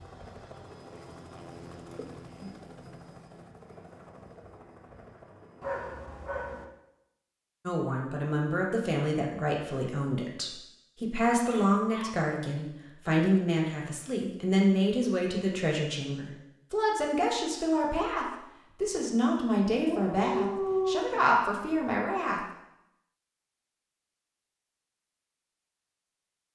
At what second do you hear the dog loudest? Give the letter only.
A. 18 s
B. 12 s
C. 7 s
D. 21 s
D.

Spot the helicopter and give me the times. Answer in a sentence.
You can hear the helicopter from 0.0 to 6.4 s.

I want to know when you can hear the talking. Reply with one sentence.
You can hear the talking from 7.7 to 22.4 s.